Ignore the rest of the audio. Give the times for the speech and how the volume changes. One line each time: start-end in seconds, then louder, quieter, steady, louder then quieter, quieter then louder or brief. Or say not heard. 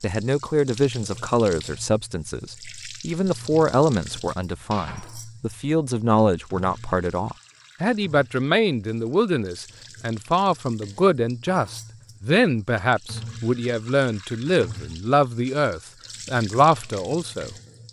0.0-17.6 steady.